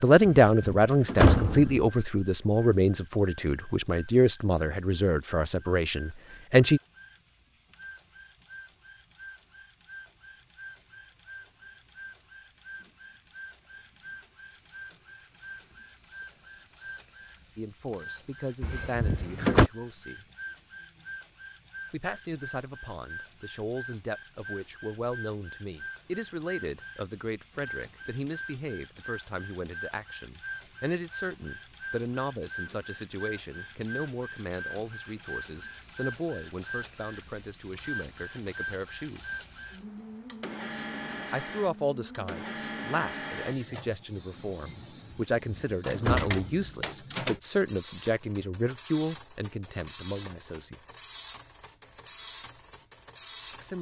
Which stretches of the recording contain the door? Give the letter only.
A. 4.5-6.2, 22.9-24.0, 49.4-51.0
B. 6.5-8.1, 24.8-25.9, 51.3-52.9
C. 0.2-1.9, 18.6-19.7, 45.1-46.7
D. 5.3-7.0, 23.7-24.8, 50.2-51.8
C.